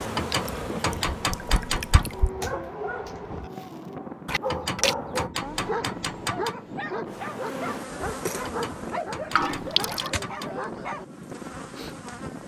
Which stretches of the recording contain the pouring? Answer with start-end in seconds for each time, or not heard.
0.3-2.3, 4.2-5.0, 9.3-10.1.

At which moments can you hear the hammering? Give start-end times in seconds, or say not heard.
0.1-2.1, 4.5-6.5, 8.4-10.6.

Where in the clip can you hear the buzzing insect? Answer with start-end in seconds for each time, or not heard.
0.0-2.3, 7.0-12.4.